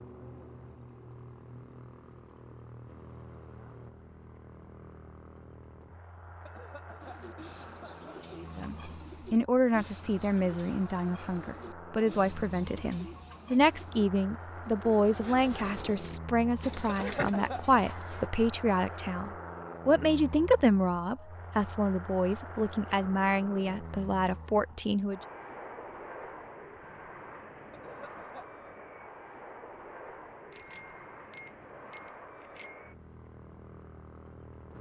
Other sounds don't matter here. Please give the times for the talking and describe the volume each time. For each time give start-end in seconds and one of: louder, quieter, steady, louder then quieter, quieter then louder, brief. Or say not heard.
8.6-25.2 steady.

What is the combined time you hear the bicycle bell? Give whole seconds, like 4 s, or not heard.
2 s.